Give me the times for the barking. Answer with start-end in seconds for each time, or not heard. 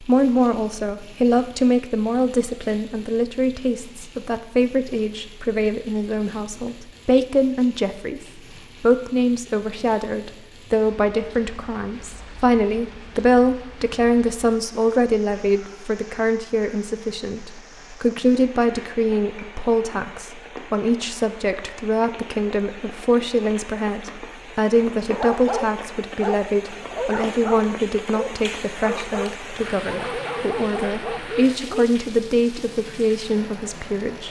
25.1-31.9.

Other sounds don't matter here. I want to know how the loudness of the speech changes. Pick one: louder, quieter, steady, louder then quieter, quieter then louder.
steady.